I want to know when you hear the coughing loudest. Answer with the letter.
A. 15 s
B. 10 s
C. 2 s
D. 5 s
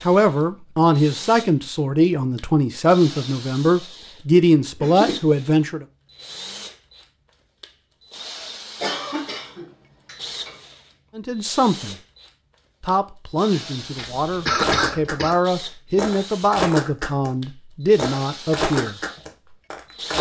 A.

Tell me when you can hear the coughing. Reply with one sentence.
The coughing can be heard from 4.3 to 5.2 s, from 8.8 to 10.6 s and from 13.9 to 15.3 s.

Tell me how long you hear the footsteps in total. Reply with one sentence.
You can hear the footsteps for 4 seconds altogether.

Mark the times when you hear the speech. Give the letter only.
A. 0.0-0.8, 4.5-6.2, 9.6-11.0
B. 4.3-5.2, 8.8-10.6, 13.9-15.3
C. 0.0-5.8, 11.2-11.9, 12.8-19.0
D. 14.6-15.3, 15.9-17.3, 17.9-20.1
C.